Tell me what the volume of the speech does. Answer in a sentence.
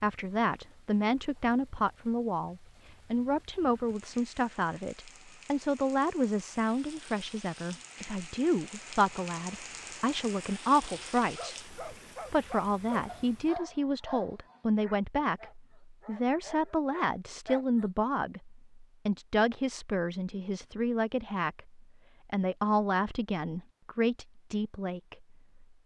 The loudness of the speech stays about the same.